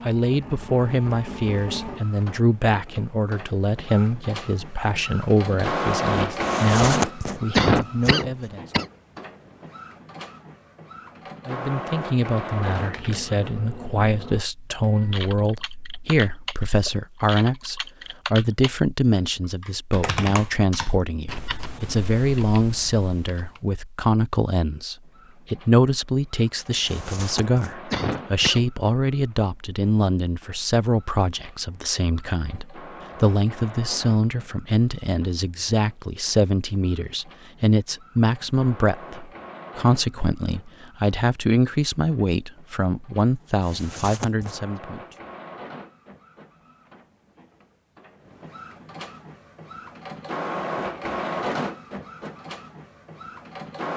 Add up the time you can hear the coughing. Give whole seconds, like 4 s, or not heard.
5 s.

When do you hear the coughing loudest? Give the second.
8 s.